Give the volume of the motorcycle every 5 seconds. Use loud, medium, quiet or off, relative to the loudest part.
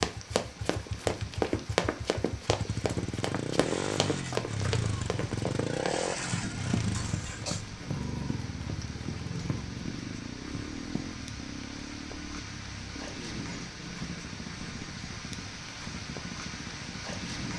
loud, loud, medium, medium.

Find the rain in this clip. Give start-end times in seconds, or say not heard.
0.0-17.5.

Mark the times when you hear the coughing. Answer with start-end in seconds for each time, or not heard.
6.9-7.7.